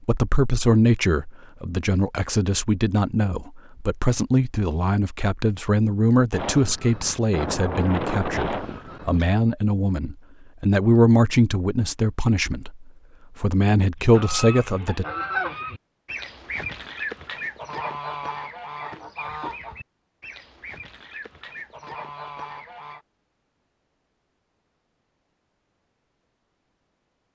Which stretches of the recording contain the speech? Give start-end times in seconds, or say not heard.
0.0-15.1.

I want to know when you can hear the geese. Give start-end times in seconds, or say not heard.
6.3-9.3, 13.9-23.1.